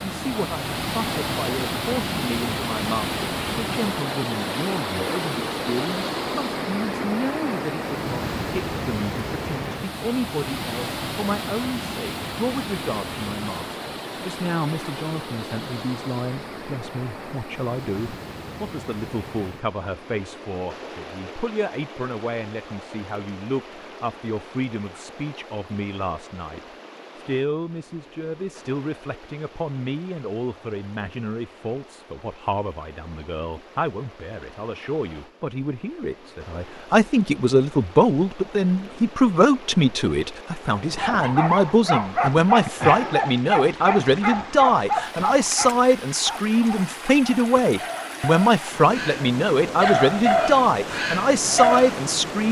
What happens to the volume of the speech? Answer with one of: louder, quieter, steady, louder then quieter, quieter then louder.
louder.